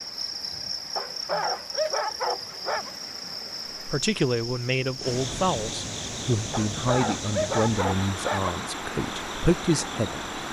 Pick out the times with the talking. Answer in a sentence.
The talking can be heard from 3.8 to 10.4 s.